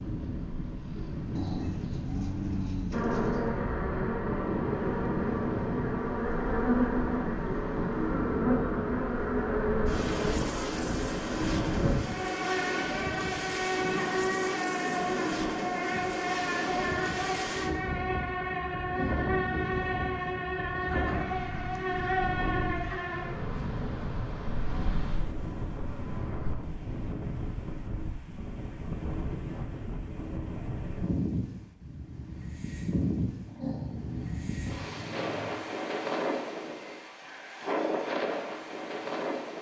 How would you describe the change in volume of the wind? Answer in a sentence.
The loudness of the wind stays about the same.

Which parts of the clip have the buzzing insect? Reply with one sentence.
The buzzing insect can be heard from 2.9 to 26.5 s.